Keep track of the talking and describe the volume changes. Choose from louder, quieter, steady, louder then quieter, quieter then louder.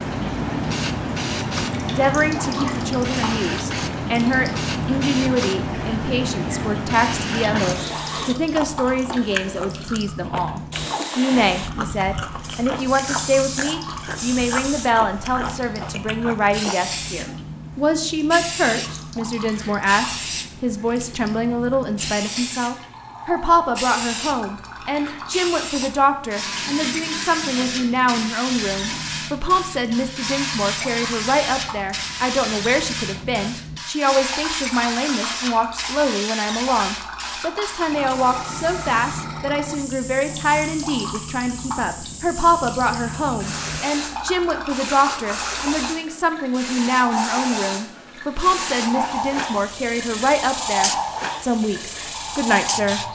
steady.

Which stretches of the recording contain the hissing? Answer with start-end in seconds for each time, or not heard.
0.0-53.1.